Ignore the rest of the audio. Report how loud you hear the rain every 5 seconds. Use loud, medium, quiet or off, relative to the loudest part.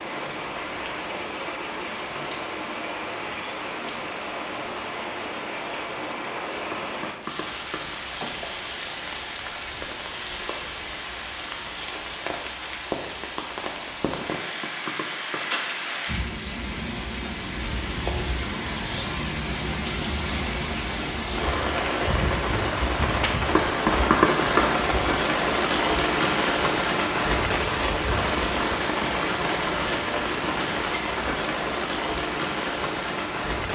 medium, medium, medium, medium, loud, loud, loud.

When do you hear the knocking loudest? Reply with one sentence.
The loudest moment of the knocking is at 24 seconds.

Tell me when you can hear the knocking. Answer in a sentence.
You can hear the knocking from 6.7 to 8.4 s, from 14.3 to 15.4 s and from 23.6 to 24.6 s.